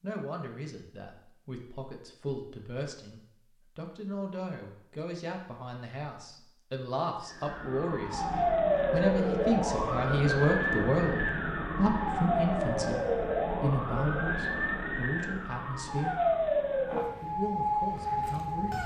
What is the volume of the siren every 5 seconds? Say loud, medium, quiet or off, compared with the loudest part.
off, loud, loud, loud.